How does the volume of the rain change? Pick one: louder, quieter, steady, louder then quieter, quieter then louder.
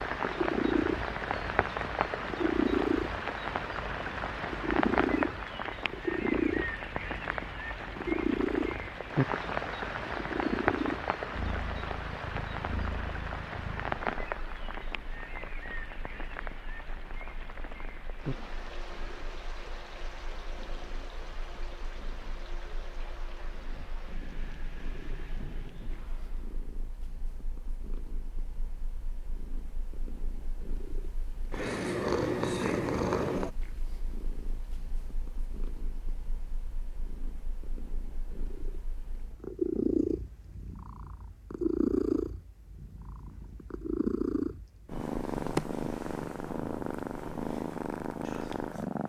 quieter.